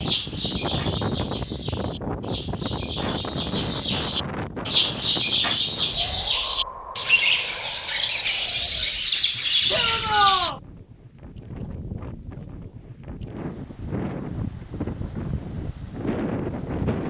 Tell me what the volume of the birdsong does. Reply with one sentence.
The loudness of the birdsong goes up.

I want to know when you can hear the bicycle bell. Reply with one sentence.
The bicycle bell can't be heard in this clip.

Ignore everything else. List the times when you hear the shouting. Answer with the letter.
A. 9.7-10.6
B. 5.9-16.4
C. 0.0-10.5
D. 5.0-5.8
A.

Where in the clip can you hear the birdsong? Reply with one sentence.
The birdsong can be heard from 0.0 to 10.5 s.